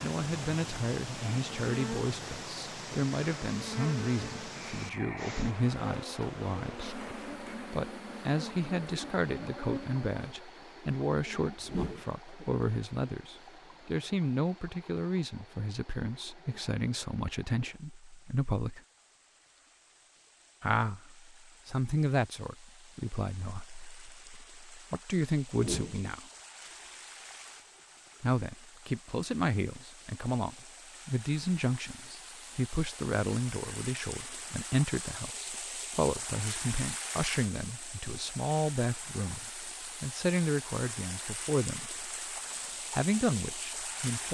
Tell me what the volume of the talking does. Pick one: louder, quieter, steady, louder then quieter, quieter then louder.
steady.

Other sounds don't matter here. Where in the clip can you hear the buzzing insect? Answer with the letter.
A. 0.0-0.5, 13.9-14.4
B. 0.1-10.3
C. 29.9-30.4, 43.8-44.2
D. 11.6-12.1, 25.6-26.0
B.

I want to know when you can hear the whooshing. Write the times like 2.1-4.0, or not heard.
11.6-12.1, 25.6-26.0.